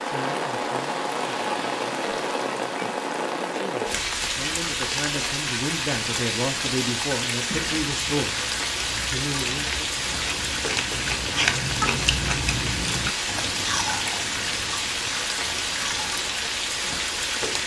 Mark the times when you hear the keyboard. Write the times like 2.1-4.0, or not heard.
not heard.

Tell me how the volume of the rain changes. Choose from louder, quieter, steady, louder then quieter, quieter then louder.
steady.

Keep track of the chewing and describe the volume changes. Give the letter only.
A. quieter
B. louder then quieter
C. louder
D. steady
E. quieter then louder
B.